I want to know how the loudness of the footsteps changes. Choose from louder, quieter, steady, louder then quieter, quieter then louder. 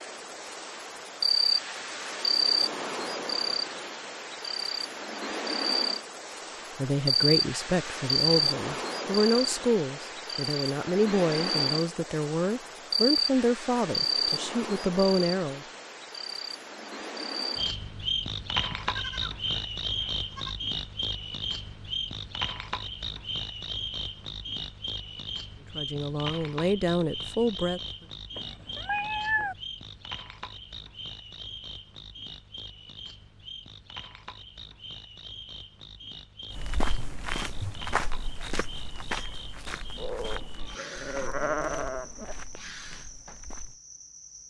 quieter.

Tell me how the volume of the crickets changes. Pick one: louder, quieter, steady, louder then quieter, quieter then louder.
quieter.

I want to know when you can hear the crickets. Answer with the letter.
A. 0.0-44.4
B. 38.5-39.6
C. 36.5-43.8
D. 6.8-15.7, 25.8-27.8
A.